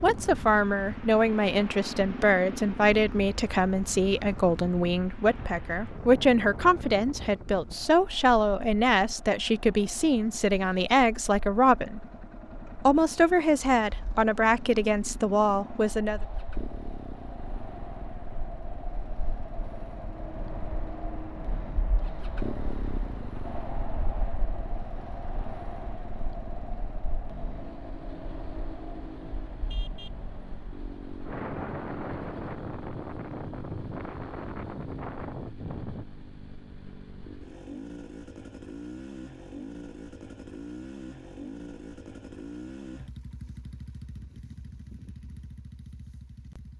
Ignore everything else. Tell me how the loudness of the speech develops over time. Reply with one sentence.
The volume of the speech stays about the same.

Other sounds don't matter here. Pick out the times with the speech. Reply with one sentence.
The speech can be heard from 0.0 to 12.1 s and from 12.8 to 16.2 s.